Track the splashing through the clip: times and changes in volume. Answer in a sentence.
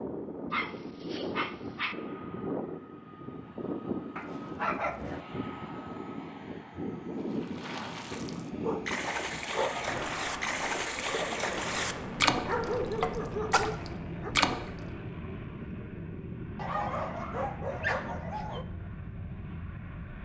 You can hear the splashing from 7.2 to 14.8 s, getting louder.